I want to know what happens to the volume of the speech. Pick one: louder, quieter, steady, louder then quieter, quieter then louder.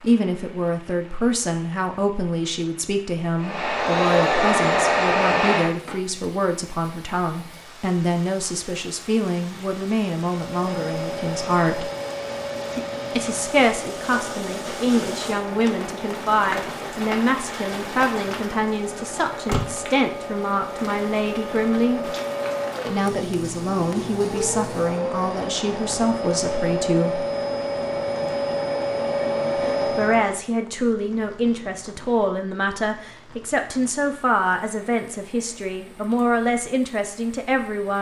steady.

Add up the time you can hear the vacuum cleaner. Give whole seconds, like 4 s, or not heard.
23 s.